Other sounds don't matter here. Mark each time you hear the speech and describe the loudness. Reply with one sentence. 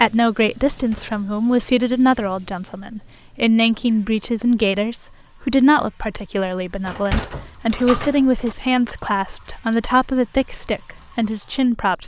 You can hear the speech from 0.0 to 12.0 s, at a steady volume.